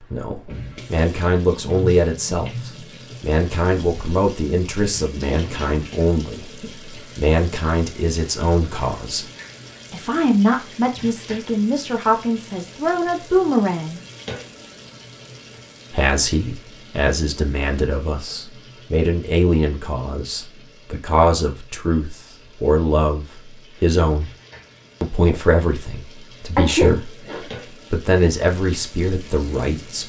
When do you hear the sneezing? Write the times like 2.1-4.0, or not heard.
26.6-27.4.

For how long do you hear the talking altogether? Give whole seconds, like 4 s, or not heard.
26 s.